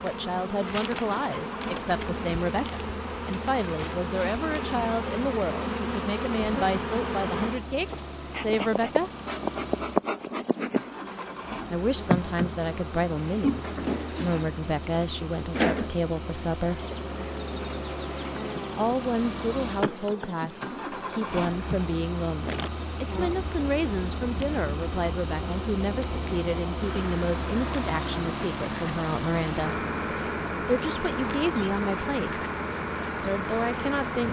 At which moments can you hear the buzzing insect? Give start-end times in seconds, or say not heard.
0.0-34.2.